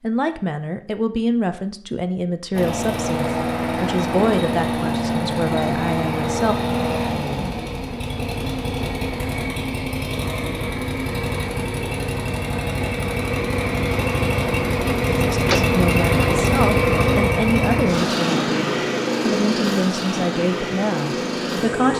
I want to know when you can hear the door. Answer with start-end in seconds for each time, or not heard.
15.3-15.8.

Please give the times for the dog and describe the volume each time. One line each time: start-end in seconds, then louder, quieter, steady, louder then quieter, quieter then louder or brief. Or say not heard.
not heard.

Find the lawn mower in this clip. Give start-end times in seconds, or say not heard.
2.5-21.9.